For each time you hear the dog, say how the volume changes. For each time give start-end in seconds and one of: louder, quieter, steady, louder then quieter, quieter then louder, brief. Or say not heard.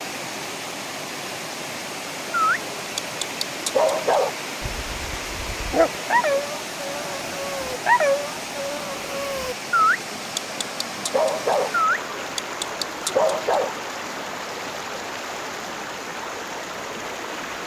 2.3-13.8 steady.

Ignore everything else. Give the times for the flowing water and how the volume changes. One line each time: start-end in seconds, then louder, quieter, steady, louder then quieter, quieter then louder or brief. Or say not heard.
0.0-17.6 steady.